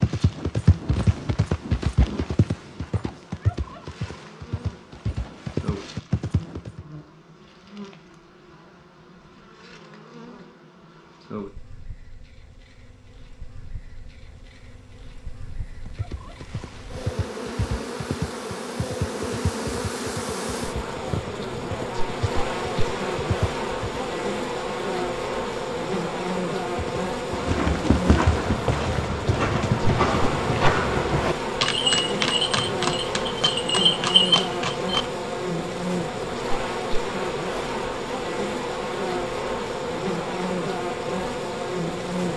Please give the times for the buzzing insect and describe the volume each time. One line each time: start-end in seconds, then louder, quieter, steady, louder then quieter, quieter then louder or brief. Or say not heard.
0.0-42.3 louder.